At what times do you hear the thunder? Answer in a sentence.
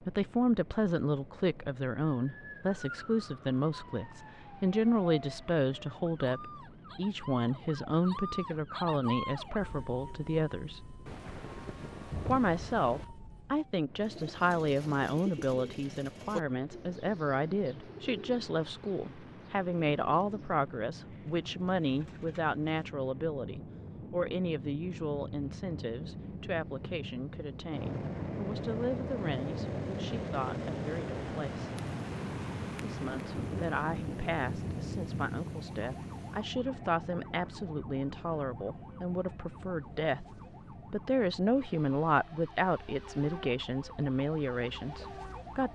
The thunder can be heard from 11.1 to 13.1 s and from 31.8 to 36.5 s.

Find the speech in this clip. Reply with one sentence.
You can hear the speech from 0.0 to 10.8 s, from 12.2 to 31.7 s and from 32.8 to 45.7 s.